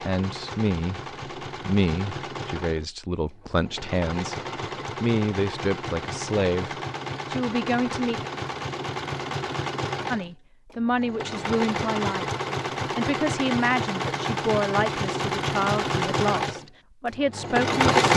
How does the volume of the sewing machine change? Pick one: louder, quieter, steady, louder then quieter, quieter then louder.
louder.